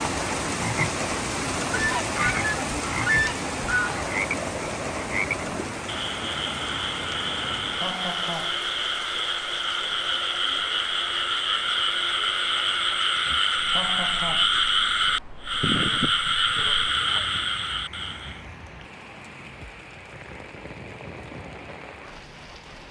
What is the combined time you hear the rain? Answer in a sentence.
The rain can be heard for 23 seconds in total.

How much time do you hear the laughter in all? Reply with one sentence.
You can hear the laughter for 2 seconds altogether.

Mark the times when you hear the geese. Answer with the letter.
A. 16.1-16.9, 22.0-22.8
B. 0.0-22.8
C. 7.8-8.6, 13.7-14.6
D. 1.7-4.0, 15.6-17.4
D.